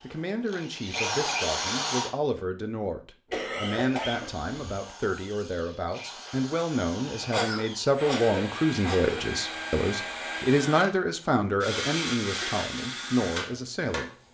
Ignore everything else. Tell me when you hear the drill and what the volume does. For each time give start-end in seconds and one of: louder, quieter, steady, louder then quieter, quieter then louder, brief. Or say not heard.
0.0-2.1 brief
3.7-14.1 louder.